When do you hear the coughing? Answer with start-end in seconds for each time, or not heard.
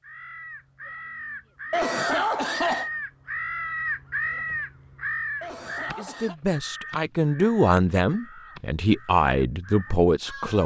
1.7-2.9, 5.4-6.3.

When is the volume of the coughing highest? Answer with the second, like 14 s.
2 s.